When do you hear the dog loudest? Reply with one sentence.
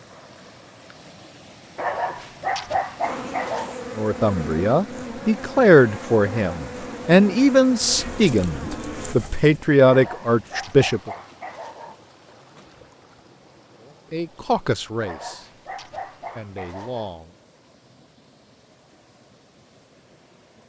The loudest moment of the dog is at 3 seconds.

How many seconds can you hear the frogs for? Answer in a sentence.
The frogs can't be heard in this clip.